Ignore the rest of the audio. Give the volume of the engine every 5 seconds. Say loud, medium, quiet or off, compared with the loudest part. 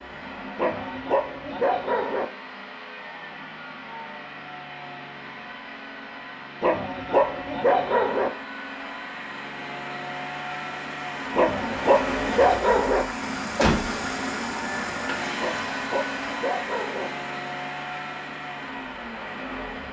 medium, medium, loud, loud.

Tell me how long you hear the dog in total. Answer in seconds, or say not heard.
7 s.